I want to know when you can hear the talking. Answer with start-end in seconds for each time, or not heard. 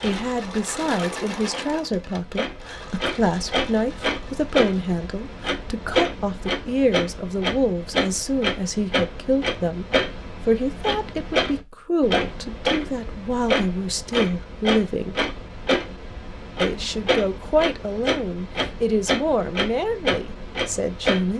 0.0-15.2, 16.6-21.3.